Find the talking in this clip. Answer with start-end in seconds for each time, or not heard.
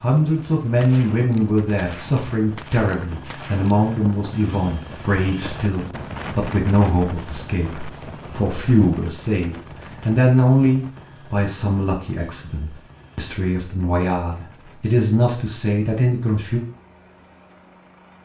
0.0-16.6.